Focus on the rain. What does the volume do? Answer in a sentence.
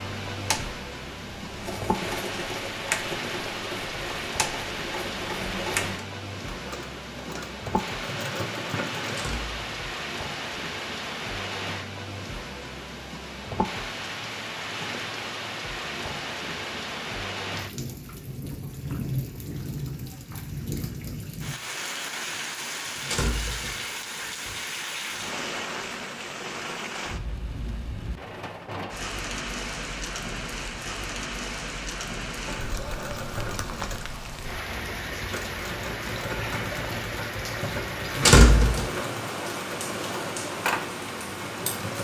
The volume of the rain stays about the same.